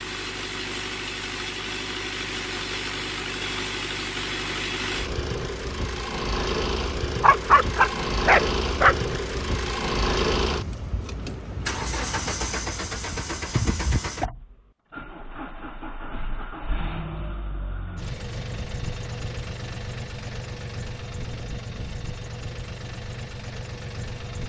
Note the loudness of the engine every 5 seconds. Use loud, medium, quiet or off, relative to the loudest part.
loud, loud, loud, medium, medium.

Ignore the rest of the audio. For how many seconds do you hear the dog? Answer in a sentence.
The dog can be heard for 2 seconds in total.